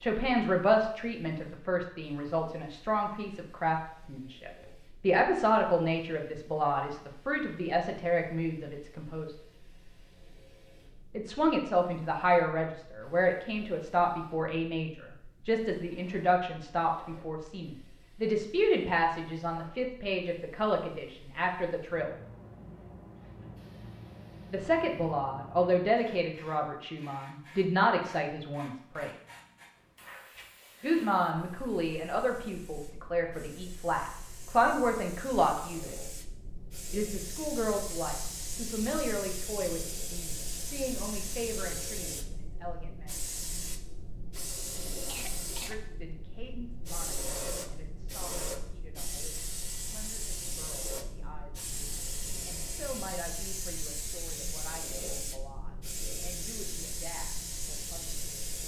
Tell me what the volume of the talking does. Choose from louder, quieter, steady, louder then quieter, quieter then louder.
quieter.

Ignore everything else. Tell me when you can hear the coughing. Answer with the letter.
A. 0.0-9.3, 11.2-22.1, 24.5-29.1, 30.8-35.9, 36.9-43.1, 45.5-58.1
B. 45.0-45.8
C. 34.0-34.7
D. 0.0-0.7
B.